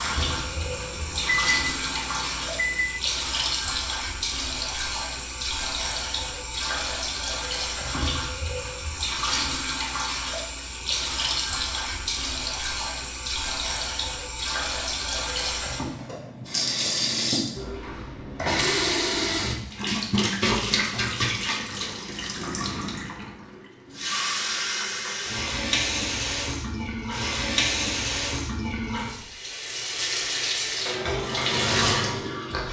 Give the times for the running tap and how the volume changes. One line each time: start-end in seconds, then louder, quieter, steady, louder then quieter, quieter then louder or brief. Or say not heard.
0.0-32.6 steady.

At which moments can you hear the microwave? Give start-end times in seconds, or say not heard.
0.0-2.9.